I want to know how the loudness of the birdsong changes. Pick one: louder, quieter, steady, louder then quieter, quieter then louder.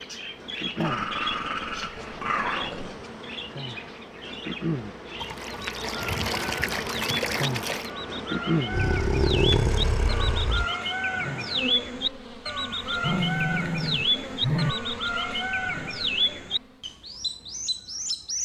louder.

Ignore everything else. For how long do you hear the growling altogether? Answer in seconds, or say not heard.
6 s.